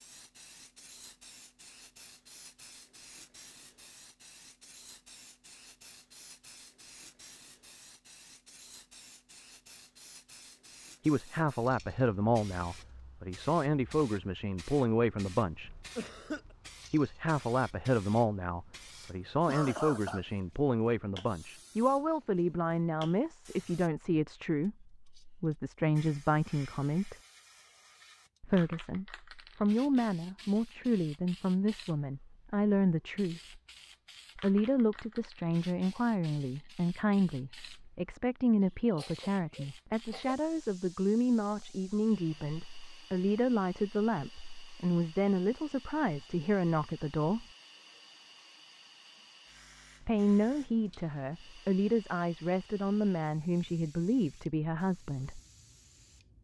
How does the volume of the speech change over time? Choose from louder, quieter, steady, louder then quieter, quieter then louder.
steady.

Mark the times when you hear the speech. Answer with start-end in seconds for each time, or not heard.
11.1-15.7, 16.9-27.1, 28.4-33.6, 34.4-47.5, 50.0-55.4.